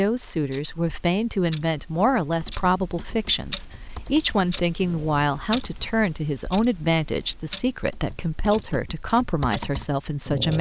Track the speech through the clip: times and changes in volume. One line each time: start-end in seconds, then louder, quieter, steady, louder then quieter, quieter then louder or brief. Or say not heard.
0.0-10.5 steady.